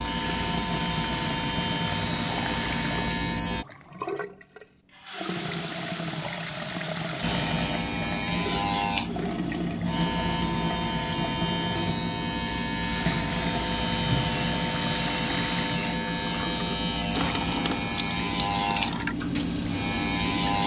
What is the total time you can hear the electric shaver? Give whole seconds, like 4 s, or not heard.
17 s.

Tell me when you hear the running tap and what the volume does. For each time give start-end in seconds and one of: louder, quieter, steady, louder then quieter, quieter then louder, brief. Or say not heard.
0.0-20.6 steady.